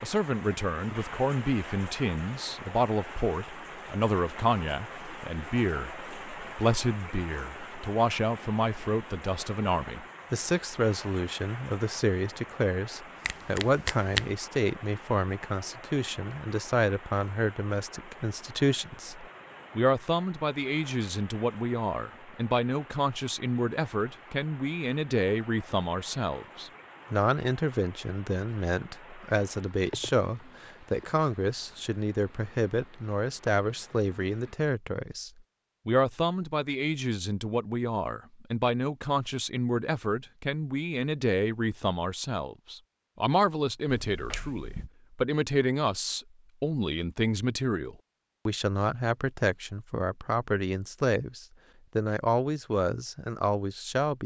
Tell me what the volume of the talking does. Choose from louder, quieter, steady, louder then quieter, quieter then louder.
steady.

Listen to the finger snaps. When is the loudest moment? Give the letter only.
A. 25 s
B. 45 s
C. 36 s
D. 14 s
D.